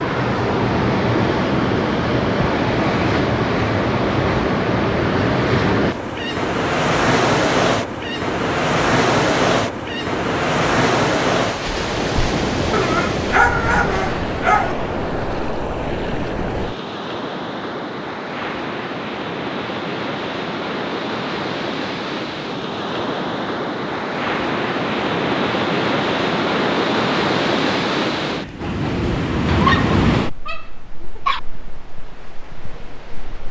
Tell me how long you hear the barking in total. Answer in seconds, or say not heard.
4 s.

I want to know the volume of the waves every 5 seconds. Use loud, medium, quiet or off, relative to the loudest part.
loud, loud, loud, medium, medium, loud, medium.